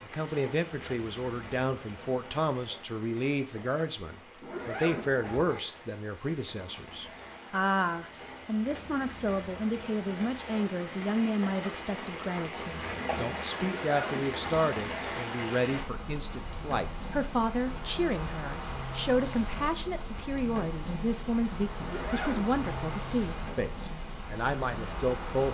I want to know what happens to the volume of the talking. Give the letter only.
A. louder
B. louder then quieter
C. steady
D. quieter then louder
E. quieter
C.